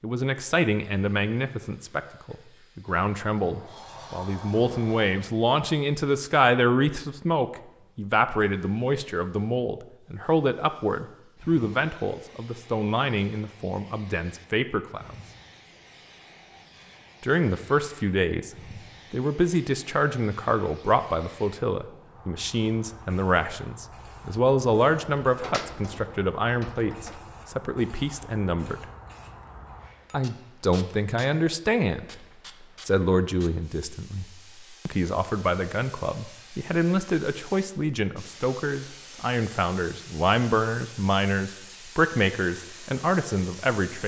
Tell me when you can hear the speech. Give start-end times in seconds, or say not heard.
0.0-15.2, 17.2-18.5, 19.1-28.9, 30.1-34.2, 34.9-44.0.